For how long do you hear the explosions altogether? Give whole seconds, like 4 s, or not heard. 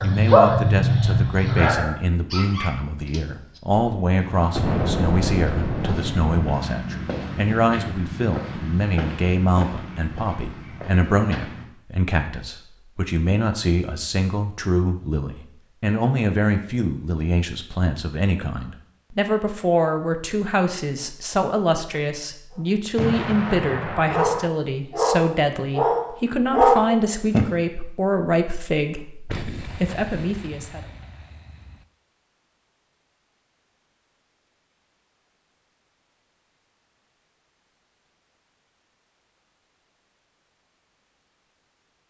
6 s.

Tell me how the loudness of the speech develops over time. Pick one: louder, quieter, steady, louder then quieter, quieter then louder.
steady.